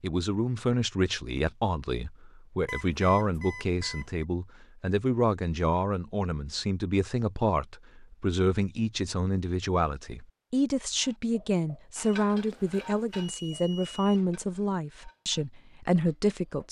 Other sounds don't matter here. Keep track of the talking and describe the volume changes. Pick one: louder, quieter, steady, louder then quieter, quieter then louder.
steady.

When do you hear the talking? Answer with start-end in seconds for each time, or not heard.
0.0-16.6.